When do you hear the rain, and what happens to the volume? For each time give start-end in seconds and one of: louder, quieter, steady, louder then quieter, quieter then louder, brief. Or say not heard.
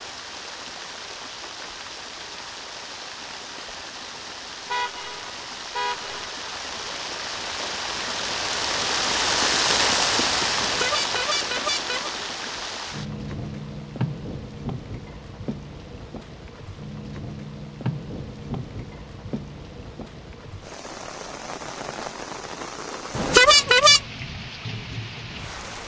0.0-25.8 louder then quieter.